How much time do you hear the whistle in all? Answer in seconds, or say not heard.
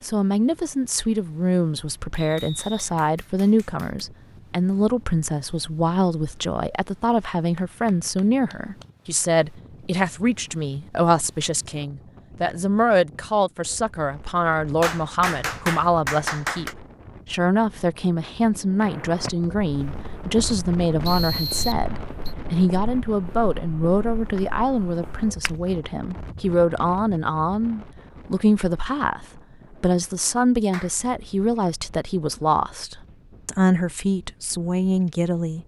2 s.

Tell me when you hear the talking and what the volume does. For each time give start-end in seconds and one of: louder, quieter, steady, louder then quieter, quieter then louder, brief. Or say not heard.
0.0-35.6 steady.